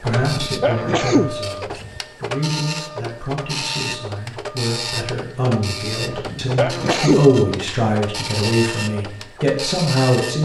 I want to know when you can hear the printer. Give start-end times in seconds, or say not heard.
0.0-10.4.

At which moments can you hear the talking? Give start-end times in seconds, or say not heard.
0.0-10.4.